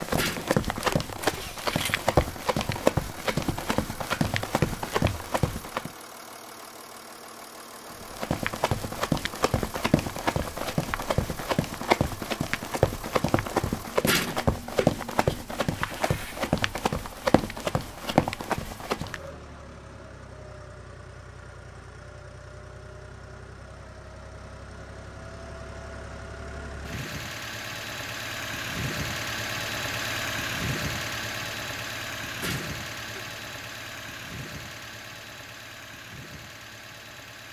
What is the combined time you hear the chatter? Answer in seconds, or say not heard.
not heard.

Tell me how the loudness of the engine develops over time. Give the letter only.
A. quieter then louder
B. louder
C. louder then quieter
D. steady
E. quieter
B.